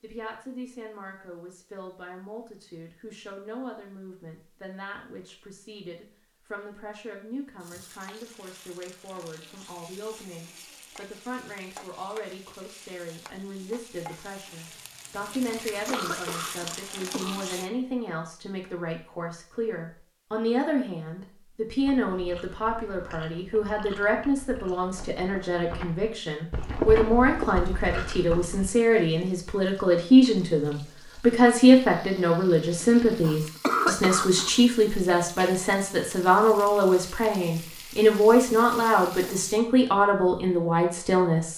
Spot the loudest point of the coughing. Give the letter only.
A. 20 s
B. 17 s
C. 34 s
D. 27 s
C.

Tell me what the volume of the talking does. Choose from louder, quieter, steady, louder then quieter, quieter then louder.
louder.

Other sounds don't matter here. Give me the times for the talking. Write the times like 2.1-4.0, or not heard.
0.0-41.5.